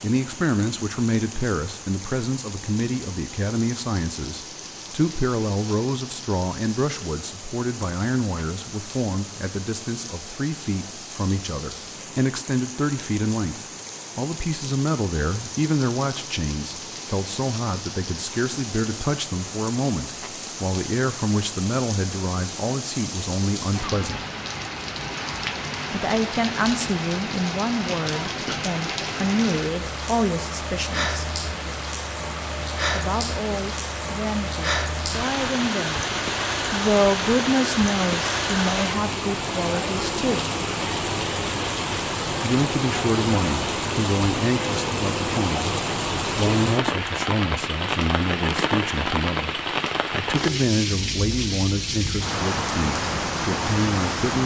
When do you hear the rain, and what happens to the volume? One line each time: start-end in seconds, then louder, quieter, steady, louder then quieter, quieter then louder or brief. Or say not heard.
0.0-54.4 louder.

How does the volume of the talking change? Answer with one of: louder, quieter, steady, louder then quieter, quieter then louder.
steady.